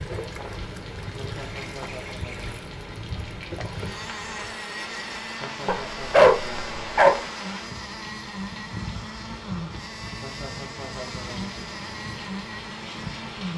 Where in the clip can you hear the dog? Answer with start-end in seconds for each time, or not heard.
5.7-7.2.